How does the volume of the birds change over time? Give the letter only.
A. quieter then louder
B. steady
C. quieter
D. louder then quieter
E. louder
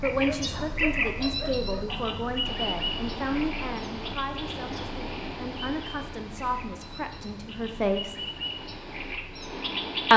A.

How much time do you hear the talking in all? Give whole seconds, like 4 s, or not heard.
8 s.